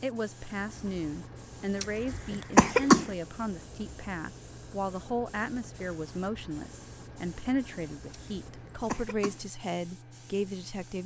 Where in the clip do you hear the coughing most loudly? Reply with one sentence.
The loudest moment of the coughing is at 3 seconds.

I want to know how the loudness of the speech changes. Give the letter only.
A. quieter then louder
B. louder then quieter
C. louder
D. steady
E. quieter
D.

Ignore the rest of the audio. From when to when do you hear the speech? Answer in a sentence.
You can hear the speech from 0.0 to 11.0 s.